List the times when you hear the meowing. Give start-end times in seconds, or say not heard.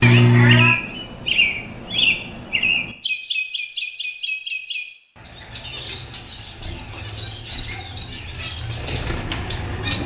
0.0-0.8.